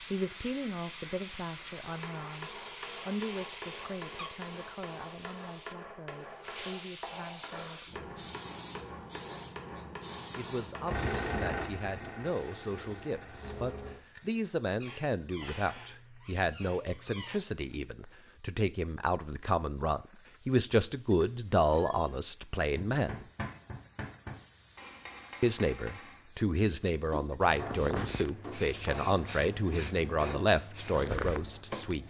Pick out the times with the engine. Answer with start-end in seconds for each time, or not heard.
10.8-14.0.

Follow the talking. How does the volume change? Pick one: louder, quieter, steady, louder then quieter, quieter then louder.
louder.